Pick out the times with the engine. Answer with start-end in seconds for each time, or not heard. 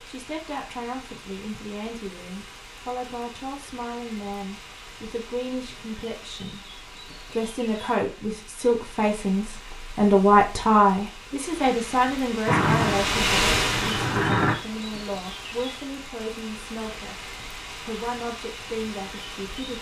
12.4-14.6.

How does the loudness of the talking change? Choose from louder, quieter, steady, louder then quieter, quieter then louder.
louder then quieter.